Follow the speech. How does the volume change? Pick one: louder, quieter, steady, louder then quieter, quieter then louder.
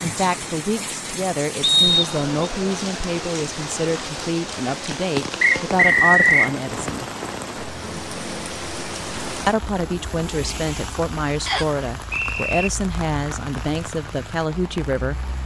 steady.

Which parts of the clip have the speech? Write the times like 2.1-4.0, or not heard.
0.0-7.0, 9.4-15.2.